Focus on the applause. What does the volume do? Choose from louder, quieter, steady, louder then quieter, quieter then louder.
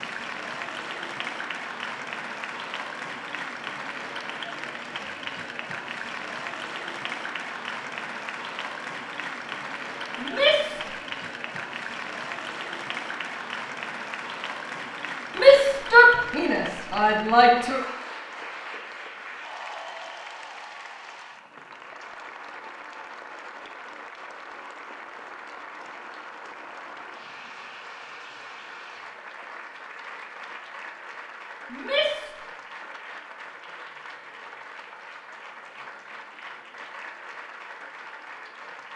quieter.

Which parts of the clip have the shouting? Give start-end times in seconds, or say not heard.
10.2-10.8, 15.3-17.8, 31.7-32.3.